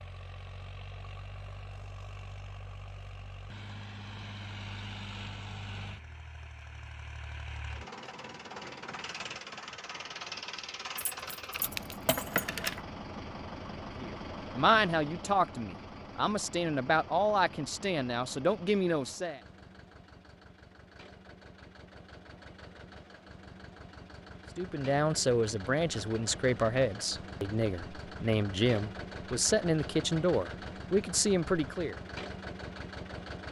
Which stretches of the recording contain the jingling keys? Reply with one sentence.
You can hear the jingling keys from 10.9 to 12.8 s.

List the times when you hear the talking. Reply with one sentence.
You can hear the talking from 13.9 to 19.4 s and from 24.6 to 31.9 s.